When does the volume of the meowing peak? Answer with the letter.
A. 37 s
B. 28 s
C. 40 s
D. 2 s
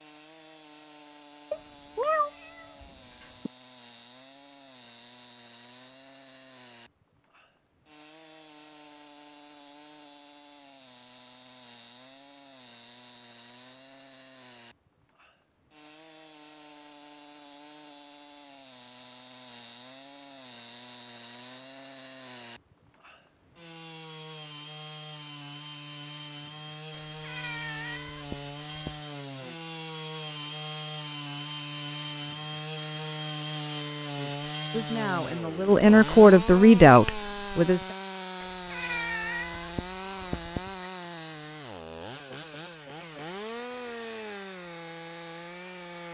D.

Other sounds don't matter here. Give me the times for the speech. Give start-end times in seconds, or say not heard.
34.1-37.8.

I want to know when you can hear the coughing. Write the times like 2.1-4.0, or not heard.
not heard.